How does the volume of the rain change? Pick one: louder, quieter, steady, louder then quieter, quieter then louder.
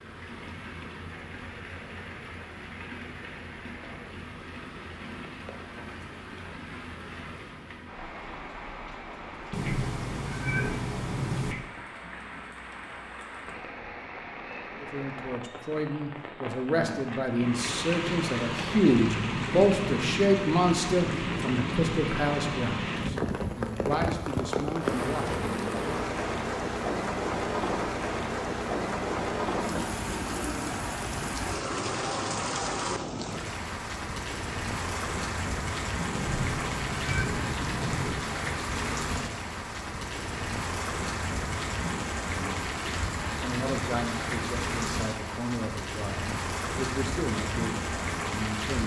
louder.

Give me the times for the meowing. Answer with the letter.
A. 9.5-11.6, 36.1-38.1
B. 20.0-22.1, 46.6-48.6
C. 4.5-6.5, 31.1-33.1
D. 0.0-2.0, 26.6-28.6
A.